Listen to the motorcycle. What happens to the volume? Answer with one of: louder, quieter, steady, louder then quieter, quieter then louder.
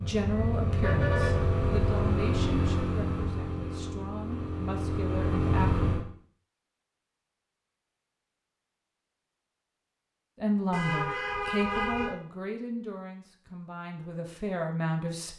quieter then louder.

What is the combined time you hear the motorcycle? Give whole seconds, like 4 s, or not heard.
6 s.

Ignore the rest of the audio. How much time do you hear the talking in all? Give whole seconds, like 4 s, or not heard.
11 s.